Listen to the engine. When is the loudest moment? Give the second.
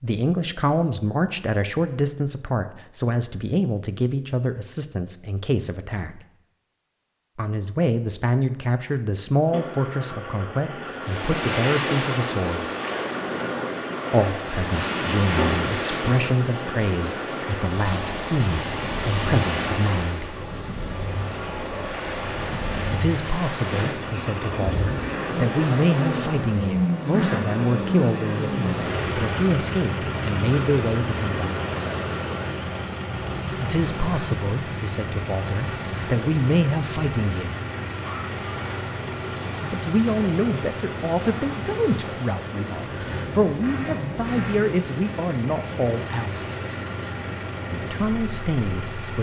27 s.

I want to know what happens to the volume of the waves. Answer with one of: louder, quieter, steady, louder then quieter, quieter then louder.
quieter.